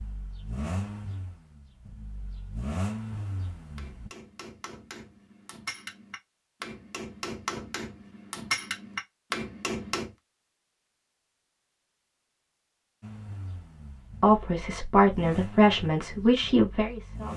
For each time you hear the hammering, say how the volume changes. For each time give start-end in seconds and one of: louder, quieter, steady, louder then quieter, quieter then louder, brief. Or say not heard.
3.8-10.1 louder.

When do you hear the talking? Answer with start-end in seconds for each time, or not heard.
14.2-17.3.